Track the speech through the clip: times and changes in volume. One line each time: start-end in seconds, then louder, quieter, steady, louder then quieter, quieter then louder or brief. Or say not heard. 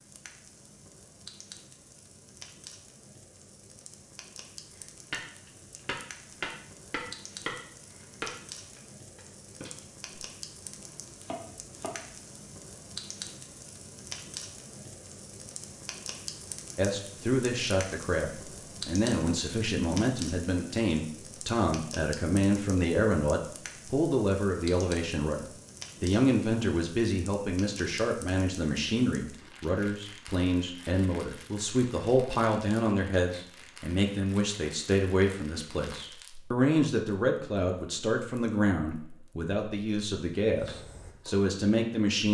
16.8-42.2 steady.